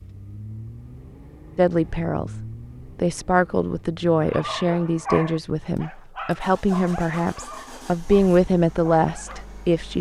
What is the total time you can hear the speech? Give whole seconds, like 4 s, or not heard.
8 s.